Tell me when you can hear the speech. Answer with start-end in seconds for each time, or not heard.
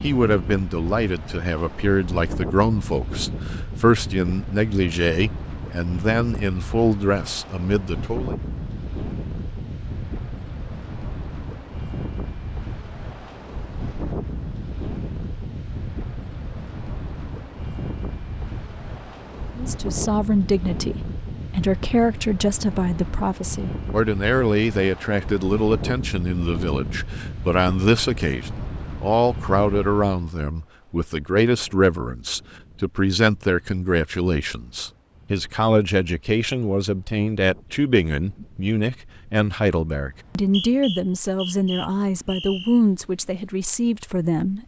0.0-8.3, 19.6-44.6.